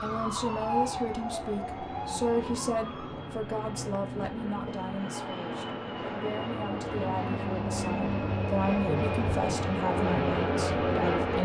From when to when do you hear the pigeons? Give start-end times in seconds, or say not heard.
not heard.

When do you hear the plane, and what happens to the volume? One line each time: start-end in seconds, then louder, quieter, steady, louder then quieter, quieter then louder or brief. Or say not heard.
0.0-11.4 louder.